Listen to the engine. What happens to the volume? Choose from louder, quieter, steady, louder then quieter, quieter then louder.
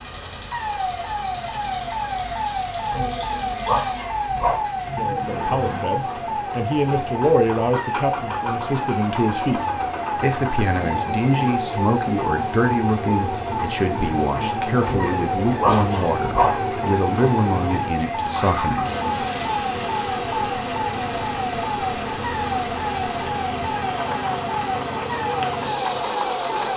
louder.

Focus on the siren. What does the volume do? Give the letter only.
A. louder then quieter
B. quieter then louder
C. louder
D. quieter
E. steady
E.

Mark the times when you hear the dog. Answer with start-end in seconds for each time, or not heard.
2.9-4.5, 14.8-16.7.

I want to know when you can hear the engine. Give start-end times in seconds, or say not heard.
0.0-26.7.